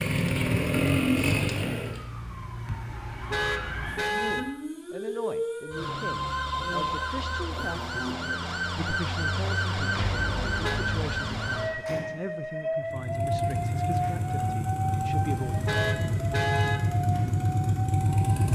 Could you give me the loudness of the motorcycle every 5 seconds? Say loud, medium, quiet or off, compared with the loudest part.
loud, off, medium, loud.